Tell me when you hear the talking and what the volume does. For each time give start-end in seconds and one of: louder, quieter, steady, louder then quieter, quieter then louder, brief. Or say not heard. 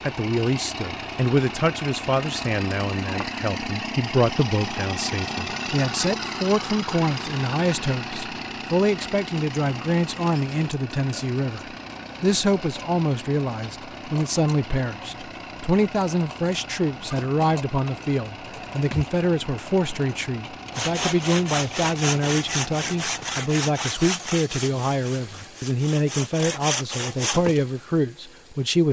0.0-28.8 steady.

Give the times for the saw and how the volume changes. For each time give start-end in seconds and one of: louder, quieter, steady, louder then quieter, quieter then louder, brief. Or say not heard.
20.8-27.6 quieter then louder.